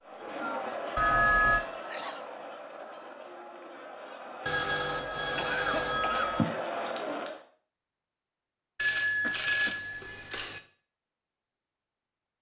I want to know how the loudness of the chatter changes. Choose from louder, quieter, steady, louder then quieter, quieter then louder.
quieter then louder.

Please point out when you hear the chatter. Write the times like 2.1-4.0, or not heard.
0.0-7.5.